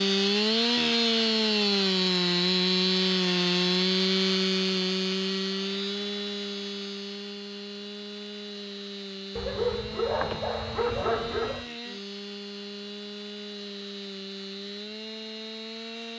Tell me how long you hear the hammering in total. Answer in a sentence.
The hammering can't be heard in this clip.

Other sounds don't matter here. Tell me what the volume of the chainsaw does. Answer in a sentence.
The volume of the chainsaw goes down.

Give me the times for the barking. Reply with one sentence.
The barking can be heard from 9.3 to 11.7 s.